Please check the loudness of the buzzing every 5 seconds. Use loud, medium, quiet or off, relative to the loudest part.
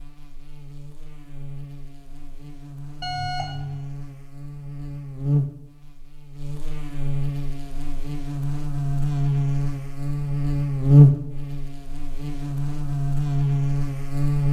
quiet, medium, loud.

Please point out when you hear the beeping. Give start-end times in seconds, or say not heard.
3.0-3.8.